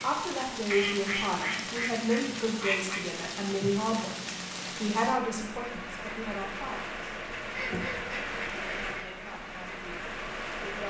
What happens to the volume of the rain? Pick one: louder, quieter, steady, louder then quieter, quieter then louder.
steady.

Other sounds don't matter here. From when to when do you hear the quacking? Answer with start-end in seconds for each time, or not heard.
0.7-3.0, 7.4-9.2.